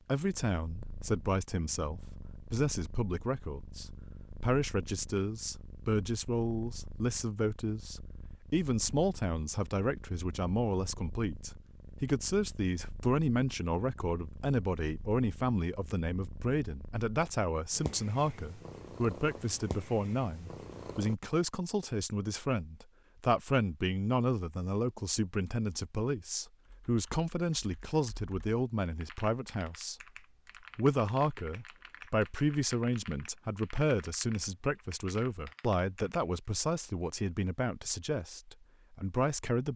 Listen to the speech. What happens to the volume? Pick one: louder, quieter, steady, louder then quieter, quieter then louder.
steady.